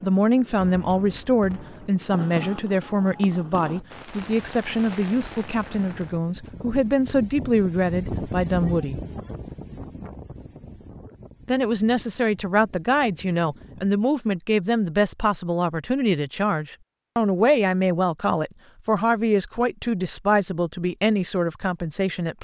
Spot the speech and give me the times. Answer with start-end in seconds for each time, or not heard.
0.0-9.0, 11.4-22.3.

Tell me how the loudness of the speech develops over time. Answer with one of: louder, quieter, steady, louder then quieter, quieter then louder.
steady.